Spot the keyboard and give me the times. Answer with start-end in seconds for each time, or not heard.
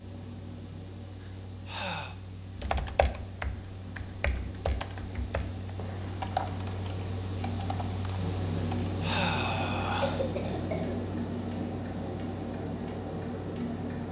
2.5-8.9.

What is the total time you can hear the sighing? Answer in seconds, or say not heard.
3 s.